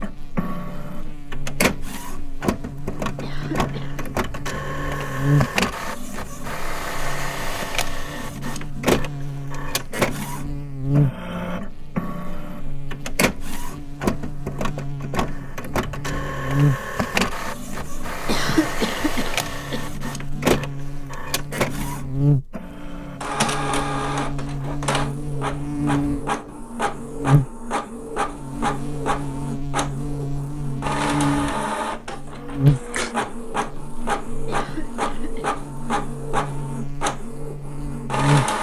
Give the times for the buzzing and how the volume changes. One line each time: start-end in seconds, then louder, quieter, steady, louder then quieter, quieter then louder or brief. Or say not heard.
0.0-38.5 steady.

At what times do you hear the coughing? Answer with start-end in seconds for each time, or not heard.
3.2-4.0, 18.2-19.9, 34.5-35.5.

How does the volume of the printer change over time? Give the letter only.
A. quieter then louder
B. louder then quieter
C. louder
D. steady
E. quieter
D.